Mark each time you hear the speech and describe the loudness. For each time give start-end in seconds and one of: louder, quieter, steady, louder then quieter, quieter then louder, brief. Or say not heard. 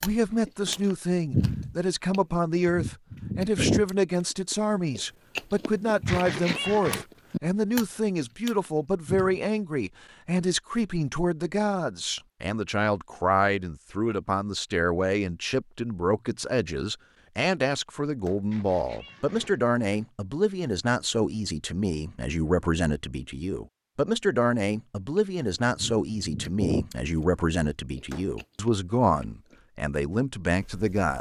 0.0-31.1 steady.